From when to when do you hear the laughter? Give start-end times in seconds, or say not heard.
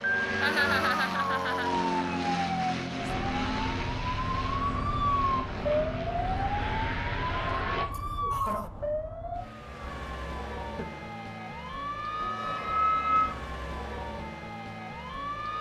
0.4-1.7, 7.9-8.7, 10.6-11.2.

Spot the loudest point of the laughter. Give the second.
1 s.